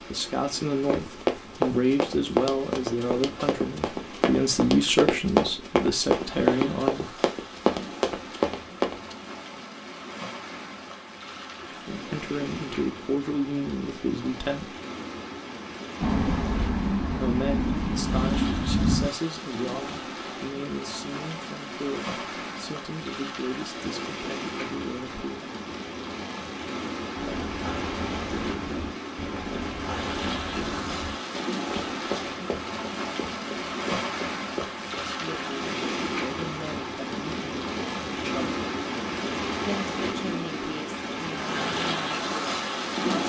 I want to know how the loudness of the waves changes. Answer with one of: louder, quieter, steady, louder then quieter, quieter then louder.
louder.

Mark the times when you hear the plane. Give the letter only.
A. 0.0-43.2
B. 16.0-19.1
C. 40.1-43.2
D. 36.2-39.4
B.